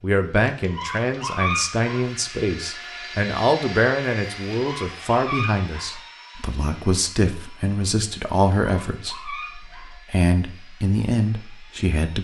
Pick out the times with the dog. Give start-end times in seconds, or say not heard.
0.5-2.1, 4.5-6.0, 8.6-10.0.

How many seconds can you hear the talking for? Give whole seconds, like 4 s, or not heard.
12 s.